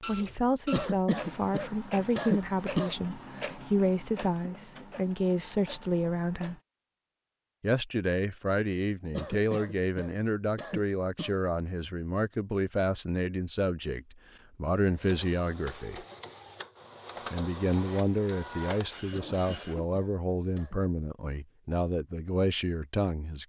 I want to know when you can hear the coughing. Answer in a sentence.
The coughing can be heard from 0.7 to 3.0 s, from 9.1 to 11.3 s and from 19.1 to 20.8 s.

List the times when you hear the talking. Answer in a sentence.
The talking can be heard from 0.1 to 6.5 s, from 7.6 to 16.1 s and from 17.3 to 23.4 s.